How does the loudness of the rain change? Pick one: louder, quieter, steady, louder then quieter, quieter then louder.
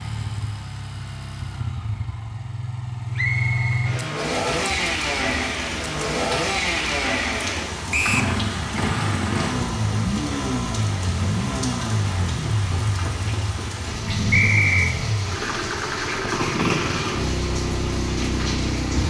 steady.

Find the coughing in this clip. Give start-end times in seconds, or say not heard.
not heard.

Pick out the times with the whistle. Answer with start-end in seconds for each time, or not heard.
3.1-3.9, 7.9-8.3, 14.3-14.9.